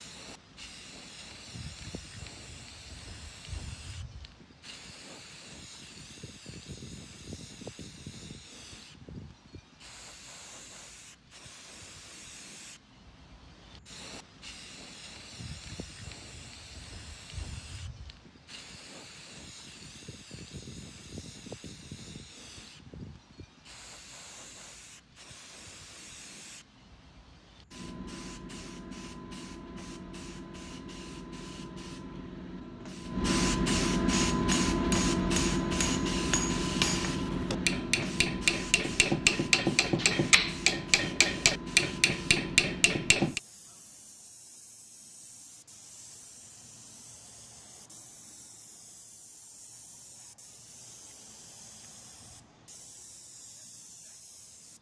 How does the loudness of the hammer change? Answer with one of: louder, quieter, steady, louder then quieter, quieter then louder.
louder.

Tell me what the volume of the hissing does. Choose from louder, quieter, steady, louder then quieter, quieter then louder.
louder then quieter.